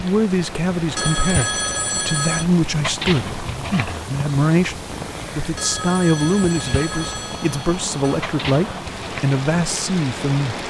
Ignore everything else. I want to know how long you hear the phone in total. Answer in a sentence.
The phone can be heard for 4 seconds in total.